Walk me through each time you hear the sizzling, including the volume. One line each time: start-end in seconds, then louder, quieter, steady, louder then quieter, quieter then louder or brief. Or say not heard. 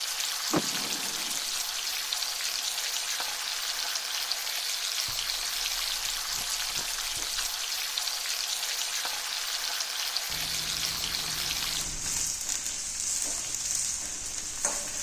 0.0-14.9 steady.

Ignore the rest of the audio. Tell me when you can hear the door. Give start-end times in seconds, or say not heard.
0.5-1.4.